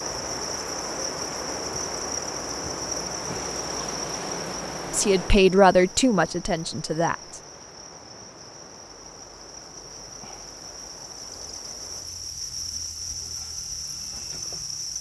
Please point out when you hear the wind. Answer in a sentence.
The wind can be heard from 0.0 to 12.1 s.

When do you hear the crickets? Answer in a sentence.
You can hear the crickets from 0.0 to 14.9 s.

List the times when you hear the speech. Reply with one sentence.
The speech can be heard from 4.9 to 7.4 s.